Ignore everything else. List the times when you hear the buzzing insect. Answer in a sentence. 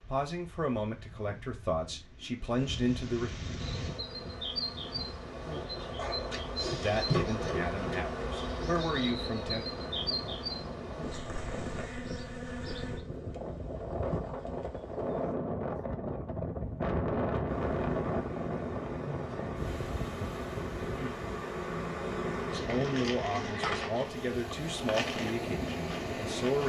The buzzing insect can be heard from 3.5 to 15.3 s and from 17.4 to 26.6 s.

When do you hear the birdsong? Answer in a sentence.
The birdsong can't be heard in this clip.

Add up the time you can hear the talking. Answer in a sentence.
The talking can be heard for 10 seconds in total.